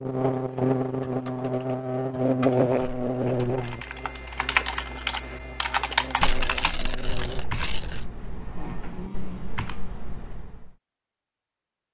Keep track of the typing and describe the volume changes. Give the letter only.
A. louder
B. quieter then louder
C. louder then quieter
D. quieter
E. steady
C.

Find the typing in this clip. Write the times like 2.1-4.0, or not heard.
0.3-10.7.